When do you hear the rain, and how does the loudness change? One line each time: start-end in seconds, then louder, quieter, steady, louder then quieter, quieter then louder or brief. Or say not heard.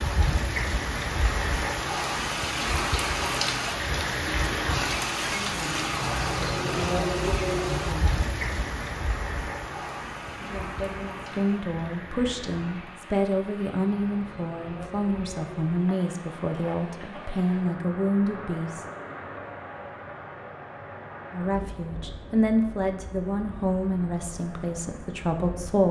0.0-25.8 quieter.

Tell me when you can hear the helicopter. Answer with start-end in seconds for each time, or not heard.
not heard.